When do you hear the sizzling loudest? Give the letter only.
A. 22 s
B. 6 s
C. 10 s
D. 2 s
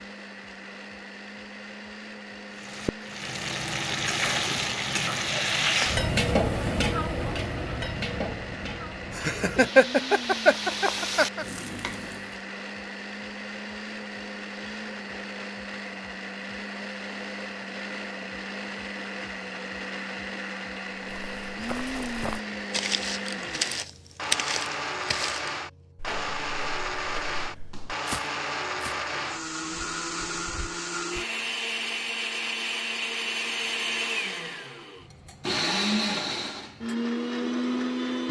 B.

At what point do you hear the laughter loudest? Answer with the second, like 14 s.
10 s.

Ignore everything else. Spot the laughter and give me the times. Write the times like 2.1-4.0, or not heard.
9.2-11.4.